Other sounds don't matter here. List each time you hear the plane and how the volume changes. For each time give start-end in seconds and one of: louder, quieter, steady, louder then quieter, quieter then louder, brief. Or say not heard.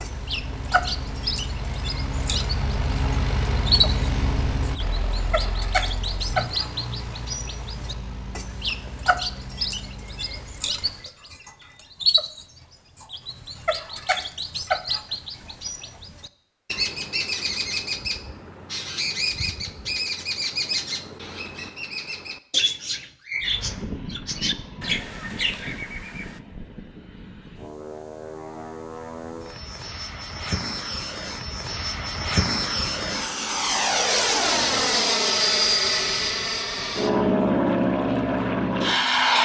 0.0-10.8 louder then quieter
23.4-39.4 louder.